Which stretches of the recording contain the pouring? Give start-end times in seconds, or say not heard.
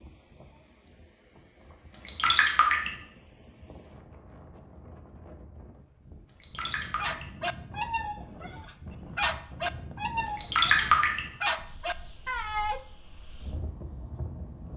1.9-2.9, 6.2-7.2, 10.2-11.2.